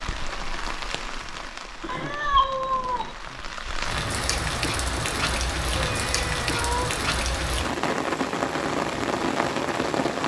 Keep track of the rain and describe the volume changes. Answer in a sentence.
The volume of the rain goes up.